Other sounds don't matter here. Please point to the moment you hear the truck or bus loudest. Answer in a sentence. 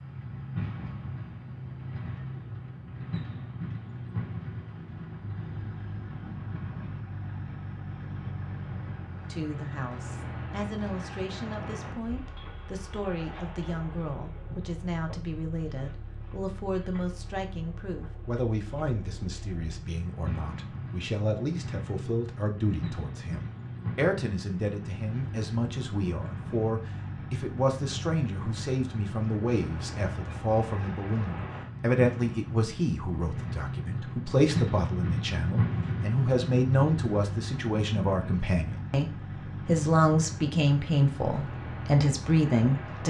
The loudest moment of the truck or bus is at 35 seconds.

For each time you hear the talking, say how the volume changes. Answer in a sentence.
You can hear the talking from 9.3 to 43.0 s, getting louder.